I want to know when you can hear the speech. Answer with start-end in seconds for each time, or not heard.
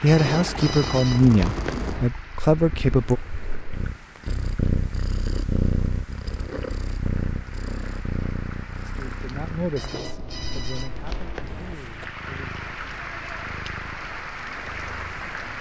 0.0-3.2, 8.8-12.5.